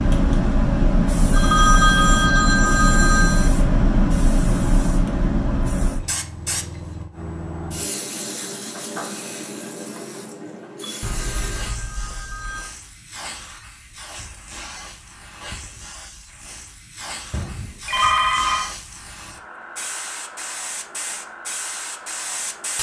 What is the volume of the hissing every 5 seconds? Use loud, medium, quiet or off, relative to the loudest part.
loud, medium, quiet, quiet, medium.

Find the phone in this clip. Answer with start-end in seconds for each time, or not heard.
1.3-3.5, 11.0-12.8, 17.3-18.7.